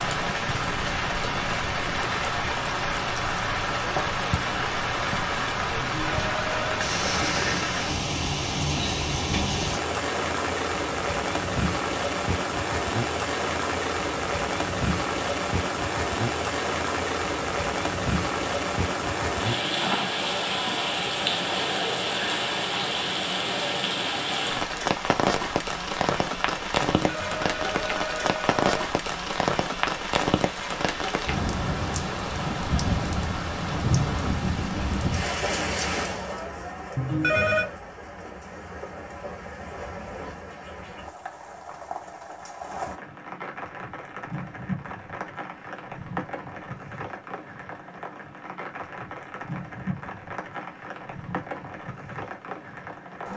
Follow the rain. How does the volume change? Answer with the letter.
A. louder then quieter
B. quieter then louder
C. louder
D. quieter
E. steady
D.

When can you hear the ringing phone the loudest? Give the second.
37 s.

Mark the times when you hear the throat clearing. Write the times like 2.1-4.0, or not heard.
7.0-7.7.